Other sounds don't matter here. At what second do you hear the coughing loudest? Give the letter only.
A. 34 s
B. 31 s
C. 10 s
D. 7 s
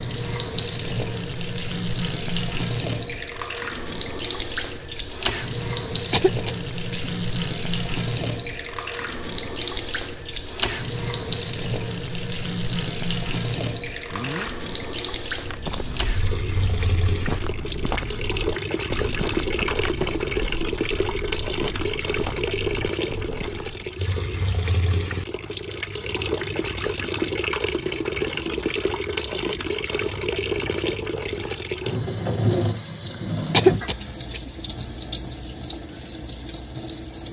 A.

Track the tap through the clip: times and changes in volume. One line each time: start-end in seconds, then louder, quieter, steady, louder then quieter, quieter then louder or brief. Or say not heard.
0.0-37.2 steady.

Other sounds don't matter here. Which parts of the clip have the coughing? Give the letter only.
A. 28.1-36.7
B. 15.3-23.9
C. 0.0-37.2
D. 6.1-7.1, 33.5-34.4
D.